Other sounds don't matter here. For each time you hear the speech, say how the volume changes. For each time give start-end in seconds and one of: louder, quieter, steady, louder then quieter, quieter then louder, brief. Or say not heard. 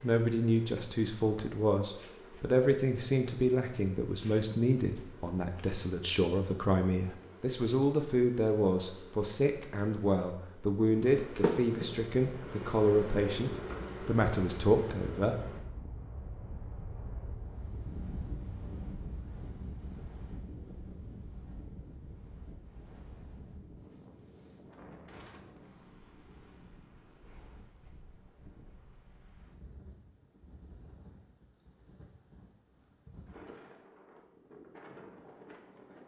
0.0-15.3 steady.